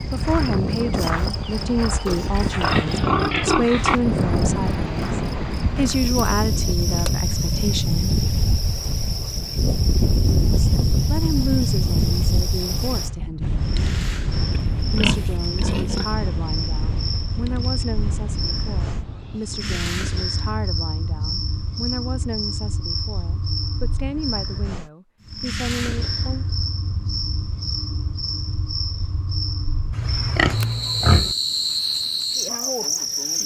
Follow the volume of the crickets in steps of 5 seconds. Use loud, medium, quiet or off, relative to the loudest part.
loud, medium, medium, medium, medium, medium, loud.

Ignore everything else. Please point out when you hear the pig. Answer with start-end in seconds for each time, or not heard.
2.0-4.0, 14.8-16.1, 29.9-31.4.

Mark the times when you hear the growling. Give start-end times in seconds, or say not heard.
not heard.